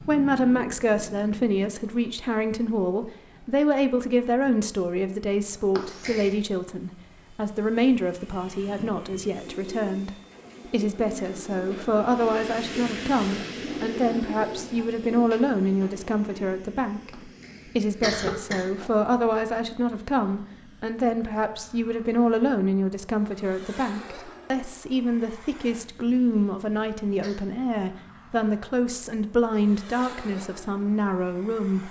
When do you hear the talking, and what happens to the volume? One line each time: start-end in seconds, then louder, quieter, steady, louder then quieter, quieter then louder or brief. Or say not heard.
0.0-10.1 steady
10.7-31.8 steady.